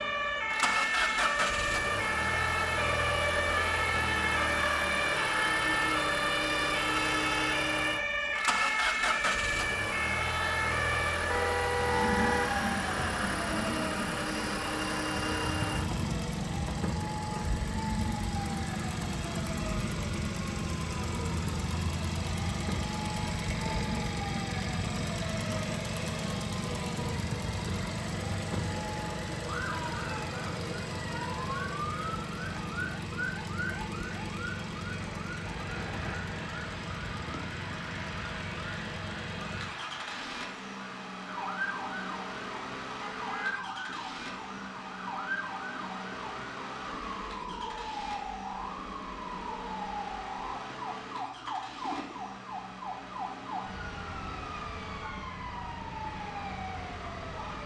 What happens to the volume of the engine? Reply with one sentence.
The volume of the engine goes down.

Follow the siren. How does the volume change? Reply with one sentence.
The volume of the siren goes down.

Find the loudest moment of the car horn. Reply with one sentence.
The loudest moment of the car horn is at 12 seconds.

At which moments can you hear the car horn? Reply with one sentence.
You can hear the car horn from 11.2 to 12.6 s and from 43.0 to 43.6 s.